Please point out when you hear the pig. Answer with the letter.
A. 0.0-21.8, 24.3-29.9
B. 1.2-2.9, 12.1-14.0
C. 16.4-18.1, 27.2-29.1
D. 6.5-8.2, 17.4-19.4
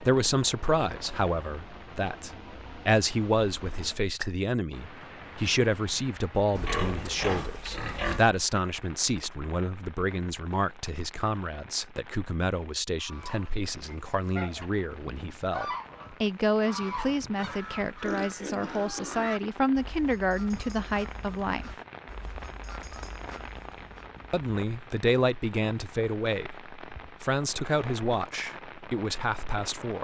D.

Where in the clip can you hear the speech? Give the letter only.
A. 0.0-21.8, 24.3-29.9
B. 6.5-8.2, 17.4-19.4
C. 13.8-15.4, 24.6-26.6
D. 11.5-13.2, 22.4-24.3
A.